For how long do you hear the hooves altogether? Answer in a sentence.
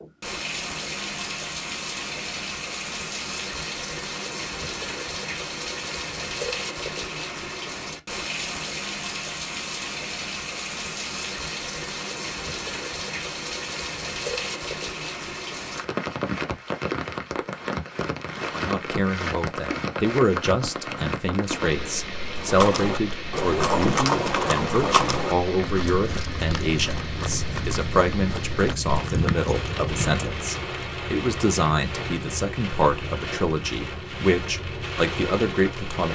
The hooves can be heard for 8 seconds in total.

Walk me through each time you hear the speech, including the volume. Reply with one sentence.
The speech can be heard from 18.5 to 36.0 s, at a steady volume.